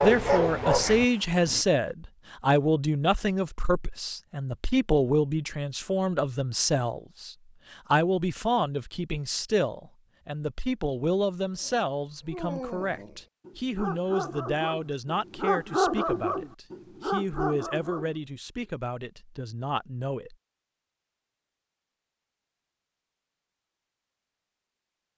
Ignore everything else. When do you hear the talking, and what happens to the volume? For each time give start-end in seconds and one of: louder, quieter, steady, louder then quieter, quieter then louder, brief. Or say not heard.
0.0-20.4 quieter.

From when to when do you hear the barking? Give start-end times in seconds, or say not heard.
0.0-1.6, 11.6-18.6.